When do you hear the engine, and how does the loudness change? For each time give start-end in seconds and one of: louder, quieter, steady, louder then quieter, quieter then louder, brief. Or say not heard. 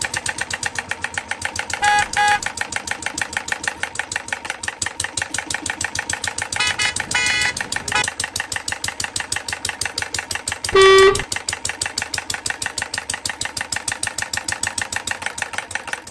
0.0-16.0 steady.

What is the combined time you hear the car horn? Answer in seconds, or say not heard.
3 s.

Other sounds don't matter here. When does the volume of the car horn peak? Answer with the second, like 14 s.
11 s.